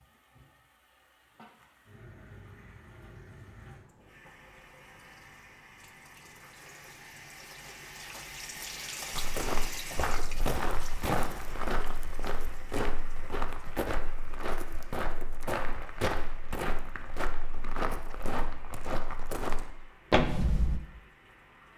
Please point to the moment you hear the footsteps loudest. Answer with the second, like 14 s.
20 s.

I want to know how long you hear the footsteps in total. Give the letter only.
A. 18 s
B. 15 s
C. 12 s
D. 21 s
C.